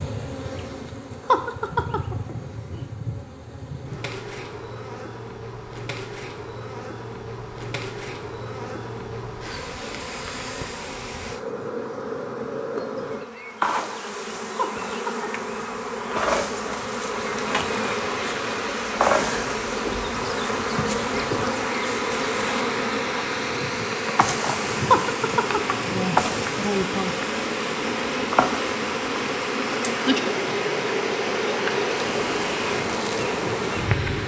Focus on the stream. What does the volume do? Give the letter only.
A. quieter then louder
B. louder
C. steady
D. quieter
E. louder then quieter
C.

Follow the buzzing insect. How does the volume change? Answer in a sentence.
The loudness of the buzzing insect goes up.